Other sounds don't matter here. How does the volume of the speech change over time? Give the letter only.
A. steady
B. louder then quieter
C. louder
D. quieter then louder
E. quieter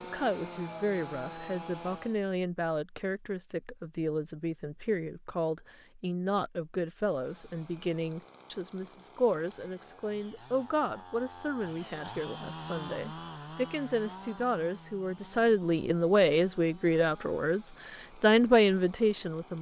C.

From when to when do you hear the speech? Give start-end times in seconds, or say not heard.
0.0-19.5.